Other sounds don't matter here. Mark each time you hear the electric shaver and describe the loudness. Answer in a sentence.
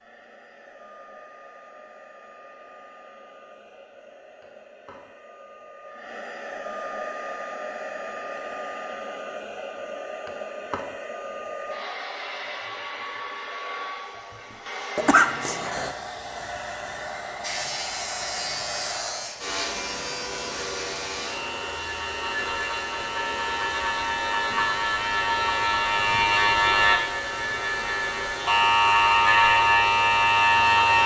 You can hear the electric shaver from 17.4 to 31.0 s, getting louder.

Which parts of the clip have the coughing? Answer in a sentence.
You can hear the coughing from 14.9 to 15.9 s.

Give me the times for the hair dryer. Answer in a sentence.
The hair dryer can be heard from 0.0 to 31.0 s.